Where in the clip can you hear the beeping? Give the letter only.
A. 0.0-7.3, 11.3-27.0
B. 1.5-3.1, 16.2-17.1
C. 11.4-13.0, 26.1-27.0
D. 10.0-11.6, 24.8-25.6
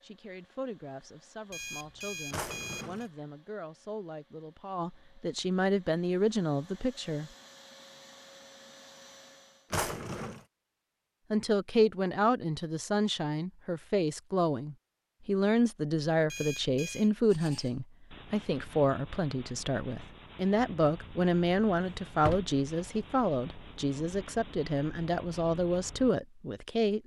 B.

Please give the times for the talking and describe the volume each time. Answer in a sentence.
You can hear the talking from 0.0 to 7.3 s, getting louder; and from 11.3 to 27.0 s, at a steady volume.